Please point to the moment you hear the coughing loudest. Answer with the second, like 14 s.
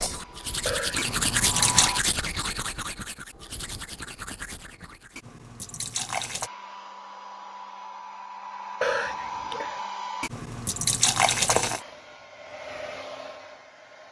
9 s.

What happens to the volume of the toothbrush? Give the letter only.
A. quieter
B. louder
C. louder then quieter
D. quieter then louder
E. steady
A.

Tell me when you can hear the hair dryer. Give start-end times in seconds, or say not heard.
0.1-2.0, 6.4-10.3, 11.8-14.0.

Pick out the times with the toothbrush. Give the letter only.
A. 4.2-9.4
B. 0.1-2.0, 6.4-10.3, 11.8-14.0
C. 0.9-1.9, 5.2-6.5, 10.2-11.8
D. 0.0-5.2
D.